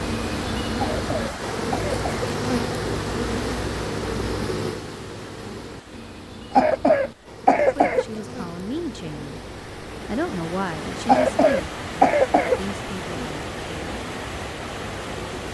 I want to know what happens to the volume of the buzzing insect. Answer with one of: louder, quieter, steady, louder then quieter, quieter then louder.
quieter.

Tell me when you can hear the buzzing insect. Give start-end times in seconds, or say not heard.
0.0-15.5.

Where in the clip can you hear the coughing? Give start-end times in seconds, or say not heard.
0.8-2.3, 6.5-8.1, 11.1-12.8.